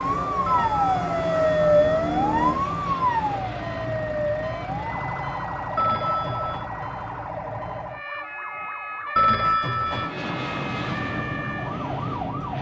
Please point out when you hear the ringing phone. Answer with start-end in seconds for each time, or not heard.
0.5-2.6, 5.8-6.7, 9.2-10.1.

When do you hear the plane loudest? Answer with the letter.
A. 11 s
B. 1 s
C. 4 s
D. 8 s
A.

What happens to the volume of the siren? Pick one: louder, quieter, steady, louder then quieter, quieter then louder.
quieter.